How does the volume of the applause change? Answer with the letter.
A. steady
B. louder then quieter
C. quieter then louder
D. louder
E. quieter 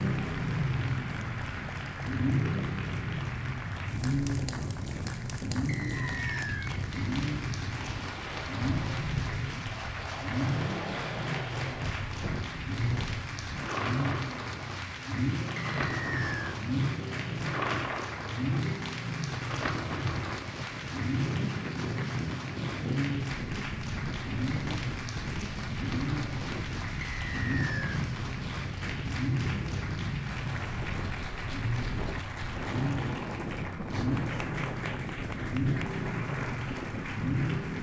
A.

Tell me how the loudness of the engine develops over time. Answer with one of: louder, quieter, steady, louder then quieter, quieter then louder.
steady.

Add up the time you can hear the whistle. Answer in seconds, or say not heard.
3 s.